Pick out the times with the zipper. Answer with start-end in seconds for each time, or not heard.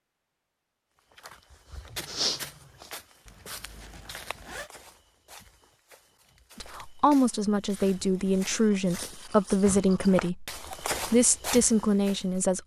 3.2-4.7.